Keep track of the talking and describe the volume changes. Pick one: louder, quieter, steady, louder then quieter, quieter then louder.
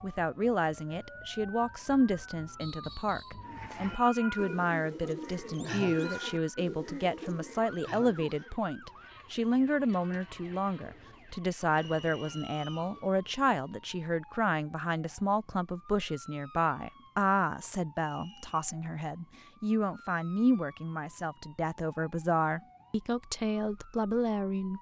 steady.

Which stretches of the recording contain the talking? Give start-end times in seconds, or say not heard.
0.0-24.7.